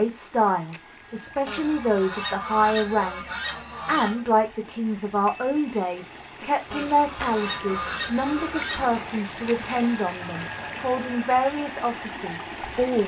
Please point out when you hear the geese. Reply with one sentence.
The geese can be heard from 1.4 to 4.2 s and from 6.7 to 9.0 s.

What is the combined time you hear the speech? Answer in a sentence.
You can hear the speech for 13 seconds altogether.